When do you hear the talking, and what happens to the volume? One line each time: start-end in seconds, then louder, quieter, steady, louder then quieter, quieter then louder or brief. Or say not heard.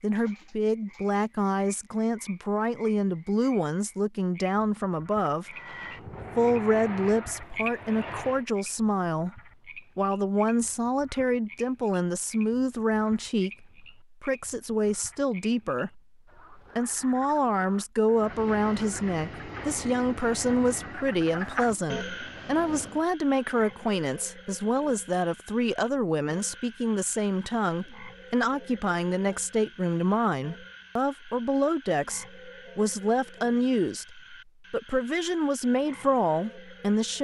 0.0-5.5 steady
6.3-37.1 steady.